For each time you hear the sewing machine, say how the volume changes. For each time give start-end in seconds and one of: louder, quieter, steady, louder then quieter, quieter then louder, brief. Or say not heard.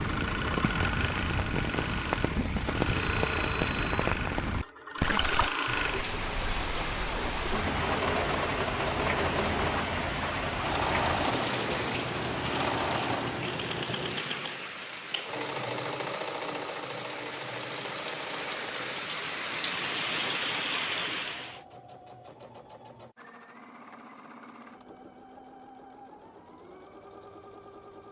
0.0-28.0 quieter.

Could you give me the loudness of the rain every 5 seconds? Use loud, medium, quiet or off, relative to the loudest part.
loud, loud, loud, medium, loud, off.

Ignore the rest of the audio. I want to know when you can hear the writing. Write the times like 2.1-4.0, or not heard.
not heard.